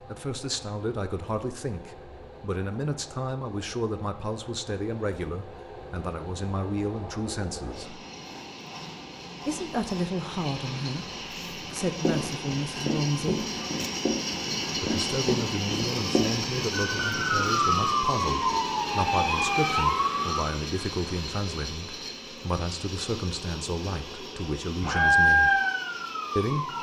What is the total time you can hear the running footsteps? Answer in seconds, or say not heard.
5 s.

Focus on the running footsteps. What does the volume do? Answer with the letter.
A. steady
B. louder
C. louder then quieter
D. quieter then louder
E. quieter
A.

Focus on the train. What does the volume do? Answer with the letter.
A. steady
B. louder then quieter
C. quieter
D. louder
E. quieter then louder
B.